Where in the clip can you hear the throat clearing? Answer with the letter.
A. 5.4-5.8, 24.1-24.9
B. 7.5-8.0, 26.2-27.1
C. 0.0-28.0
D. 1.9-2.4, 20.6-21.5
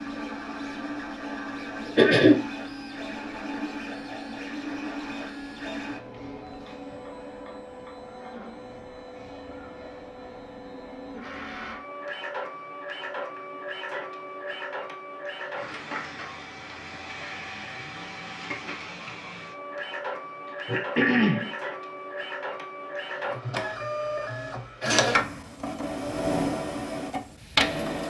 D.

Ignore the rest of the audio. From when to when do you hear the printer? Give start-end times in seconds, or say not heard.
0.0-28.0.